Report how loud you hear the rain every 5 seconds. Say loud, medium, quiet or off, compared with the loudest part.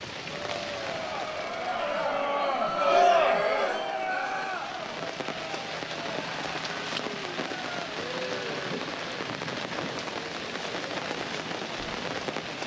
medium, loud, loud.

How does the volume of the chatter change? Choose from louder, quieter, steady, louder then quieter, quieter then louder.
quieter.